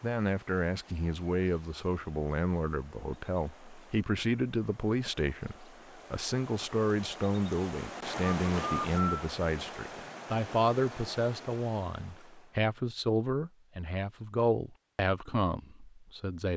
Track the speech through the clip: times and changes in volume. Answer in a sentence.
You can hear the speech from 0.0 to 16.5 s, at a steady volume.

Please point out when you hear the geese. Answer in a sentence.
You can't hear the geese here.